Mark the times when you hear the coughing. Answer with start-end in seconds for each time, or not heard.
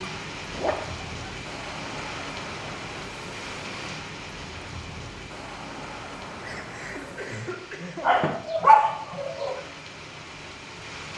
6.4-8.1.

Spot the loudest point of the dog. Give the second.
9 s.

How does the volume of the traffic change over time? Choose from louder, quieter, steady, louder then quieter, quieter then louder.
steady.